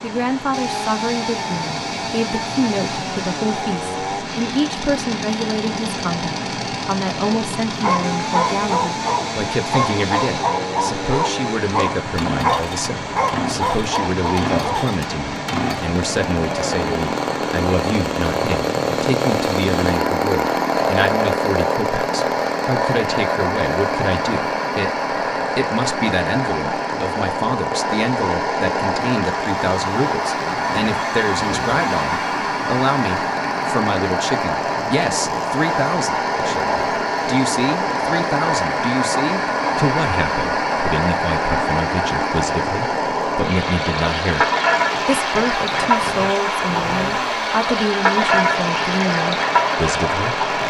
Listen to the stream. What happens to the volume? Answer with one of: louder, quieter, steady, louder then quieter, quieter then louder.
louder.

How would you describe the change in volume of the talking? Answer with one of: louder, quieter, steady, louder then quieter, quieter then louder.
steady.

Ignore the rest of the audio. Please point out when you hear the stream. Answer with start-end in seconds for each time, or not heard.
0.0-50.6.